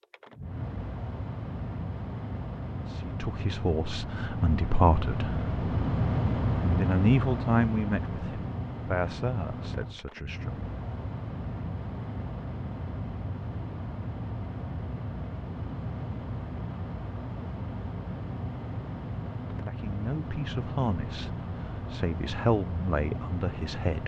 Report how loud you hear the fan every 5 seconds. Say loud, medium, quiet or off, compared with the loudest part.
medium, loud, medium, medium, medium.